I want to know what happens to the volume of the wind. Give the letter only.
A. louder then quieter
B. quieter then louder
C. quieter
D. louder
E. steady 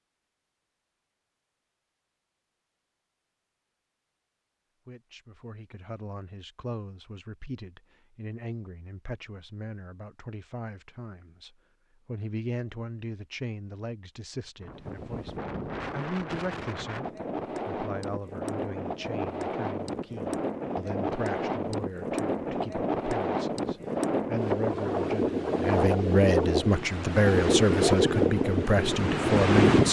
D.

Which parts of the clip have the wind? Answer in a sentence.
The wind can be heard from 14.6 to 29.8 s.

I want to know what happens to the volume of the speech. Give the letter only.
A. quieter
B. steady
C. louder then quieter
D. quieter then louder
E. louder
E.